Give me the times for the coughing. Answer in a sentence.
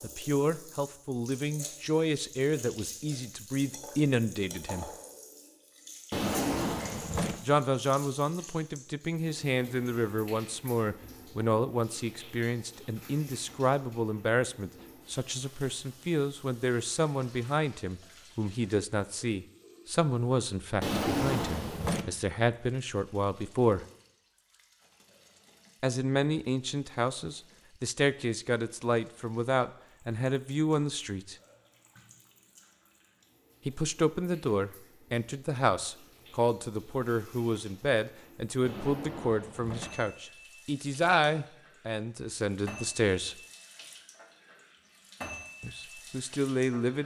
The coughing can't be heard in this clip.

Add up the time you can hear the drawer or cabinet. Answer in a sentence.
You can hear the drawer or cabinet for 4 seconds altogether.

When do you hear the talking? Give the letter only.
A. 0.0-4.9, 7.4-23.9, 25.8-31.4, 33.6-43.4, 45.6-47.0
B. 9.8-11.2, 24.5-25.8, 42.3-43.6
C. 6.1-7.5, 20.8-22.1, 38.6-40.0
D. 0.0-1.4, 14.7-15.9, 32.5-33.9
A.